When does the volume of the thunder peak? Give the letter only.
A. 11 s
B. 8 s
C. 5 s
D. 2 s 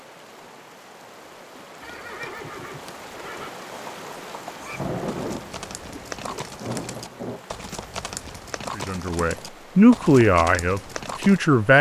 C.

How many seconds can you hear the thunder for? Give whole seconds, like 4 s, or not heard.
3 s.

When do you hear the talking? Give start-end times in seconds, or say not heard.
8.8-11.7.